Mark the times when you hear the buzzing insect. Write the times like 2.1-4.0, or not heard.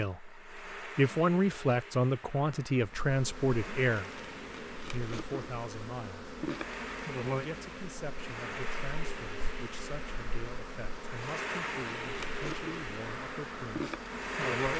2.8-14.7.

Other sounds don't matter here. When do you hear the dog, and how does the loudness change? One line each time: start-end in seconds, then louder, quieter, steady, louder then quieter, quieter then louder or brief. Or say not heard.
not heard.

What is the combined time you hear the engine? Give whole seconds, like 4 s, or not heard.
15 s.